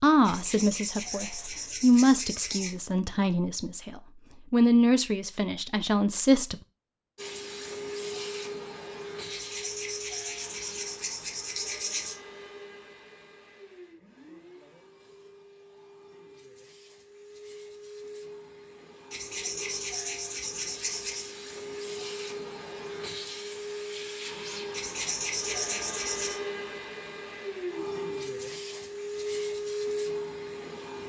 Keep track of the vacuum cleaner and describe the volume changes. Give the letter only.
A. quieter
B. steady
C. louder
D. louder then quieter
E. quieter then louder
E.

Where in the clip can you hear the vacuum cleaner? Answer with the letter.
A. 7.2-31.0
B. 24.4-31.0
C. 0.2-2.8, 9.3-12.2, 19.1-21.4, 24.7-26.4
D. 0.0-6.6
A.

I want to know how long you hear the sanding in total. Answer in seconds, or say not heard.
9 s.